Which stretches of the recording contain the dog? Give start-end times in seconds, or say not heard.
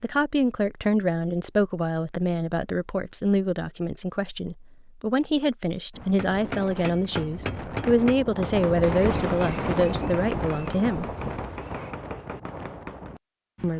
not heard.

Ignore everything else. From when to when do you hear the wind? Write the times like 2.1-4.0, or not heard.
5.9-13.7.